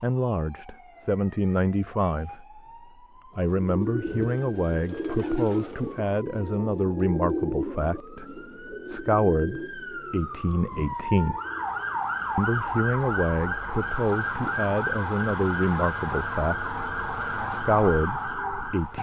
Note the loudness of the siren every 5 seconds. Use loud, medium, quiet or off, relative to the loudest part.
quiet, quiet, loud, loud.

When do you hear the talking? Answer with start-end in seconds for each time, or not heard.
0.0-11.4, 12.3-18.9.